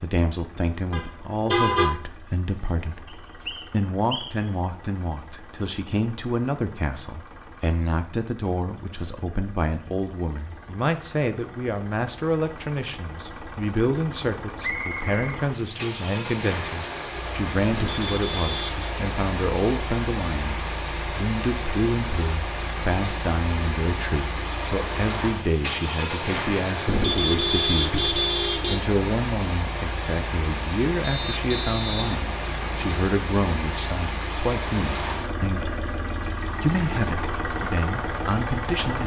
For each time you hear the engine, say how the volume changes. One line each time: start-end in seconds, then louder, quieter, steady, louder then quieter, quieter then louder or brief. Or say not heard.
0.0-39.0 louder.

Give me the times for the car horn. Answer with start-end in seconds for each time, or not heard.
0.9-1.9, 17.7-18.9, 26.9-28.8.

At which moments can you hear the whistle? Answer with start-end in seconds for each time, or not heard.
3.0-4.5, 14.6-15.4, 31.0-33.0.